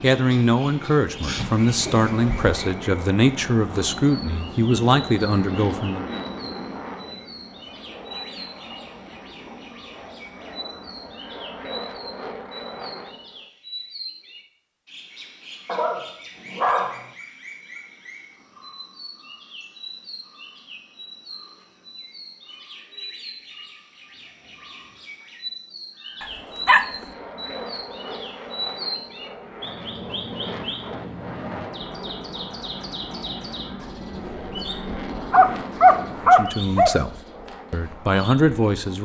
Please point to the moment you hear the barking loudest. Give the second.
36 s.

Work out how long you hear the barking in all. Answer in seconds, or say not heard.
5 s.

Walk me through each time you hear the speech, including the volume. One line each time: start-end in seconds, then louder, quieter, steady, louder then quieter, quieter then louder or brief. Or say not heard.
0.0-6.0 steady
36.2-38.9 brief.